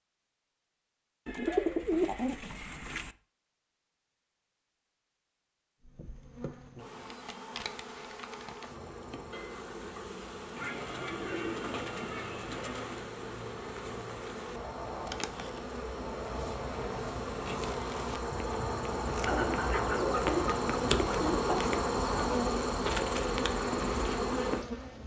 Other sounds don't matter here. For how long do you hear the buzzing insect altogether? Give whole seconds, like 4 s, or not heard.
19 s.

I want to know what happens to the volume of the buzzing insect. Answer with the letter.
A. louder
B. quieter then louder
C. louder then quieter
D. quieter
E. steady
A.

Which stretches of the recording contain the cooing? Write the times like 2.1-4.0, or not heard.
1.2-3.1, 10.6-13.1, 19.2-21.8.